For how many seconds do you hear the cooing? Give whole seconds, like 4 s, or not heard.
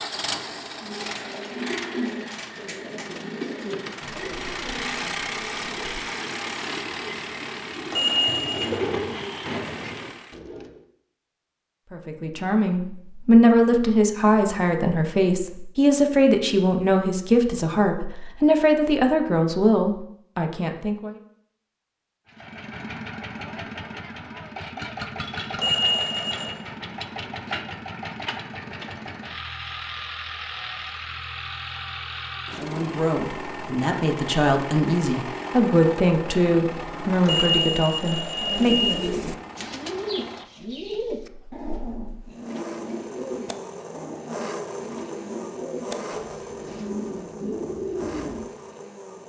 20 s.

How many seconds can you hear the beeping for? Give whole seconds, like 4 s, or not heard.
4 s.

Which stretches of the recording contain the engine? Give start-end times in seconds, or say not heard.
0.0-10.4, 22.2-49.2.